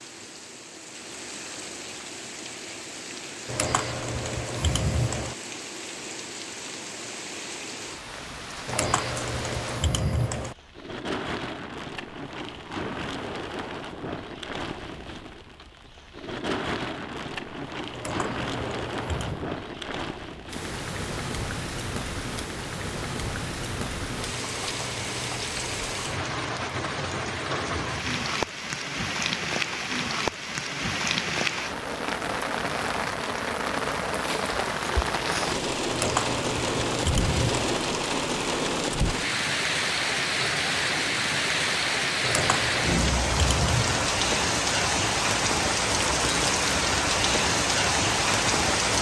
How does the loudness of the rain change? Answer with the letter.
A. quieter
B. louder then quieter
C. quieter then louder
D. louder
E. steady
D.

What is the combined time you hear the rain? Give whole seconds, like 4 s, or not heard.
49 s.